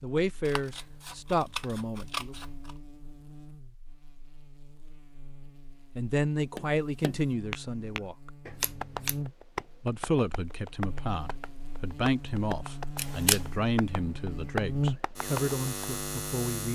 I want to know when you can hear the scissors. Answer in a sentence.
You can hear the scissors from 0.5 to 2.8 s, from 8.4 to 9.2 s and from 12.9 to 13.4 s.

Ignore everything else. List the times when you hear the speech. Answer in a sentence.
The speech can be heard from 0.0 to 2.4 s, from 6.0 to 8.3 s and from 9.8 to 16.6 s.